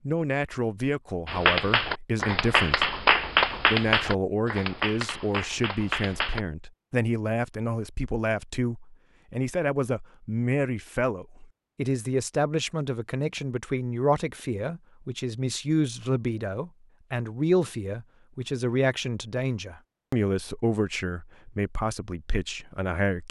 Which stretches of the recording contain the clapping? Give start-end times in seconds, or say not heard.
1.2-6.4.